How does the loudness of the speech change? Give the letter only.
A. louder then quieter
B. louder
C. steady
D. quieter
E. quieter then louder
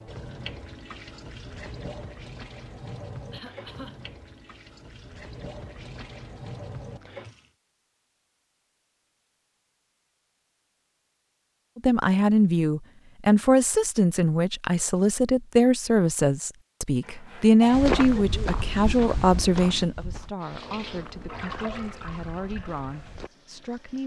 D.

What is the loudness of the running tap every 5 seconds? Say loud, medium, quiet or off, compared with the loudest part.
loud, loud, off, off, loud.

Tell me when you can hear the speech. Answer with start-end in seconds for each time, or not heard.
11.8-24.0.